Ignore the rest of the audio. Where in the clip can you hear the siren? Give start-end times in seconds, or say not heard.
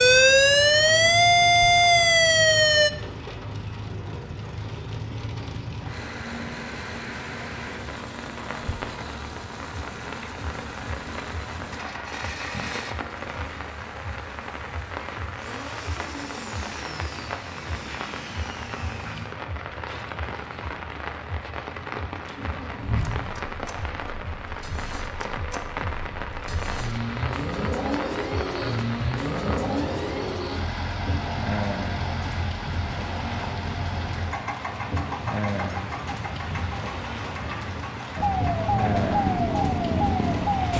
0.0-2.9, 38.1-40.7.